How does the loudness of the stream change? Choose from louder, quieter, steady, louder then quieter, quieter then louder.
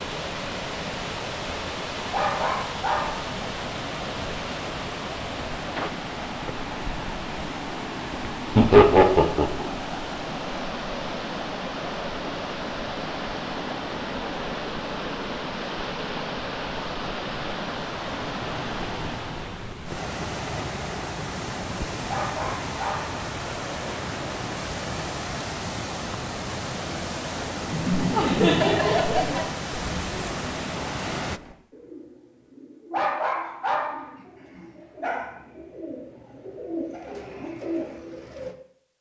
steady.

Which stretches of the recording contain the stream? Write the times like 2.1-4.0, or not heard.
0.0-31.4.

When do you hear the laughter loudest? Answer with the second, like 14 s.
9 s.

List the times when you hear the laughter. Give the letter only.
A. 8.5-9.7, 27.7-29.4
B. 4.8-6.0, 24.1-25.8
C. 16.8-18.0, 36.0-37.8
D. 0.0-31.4
A.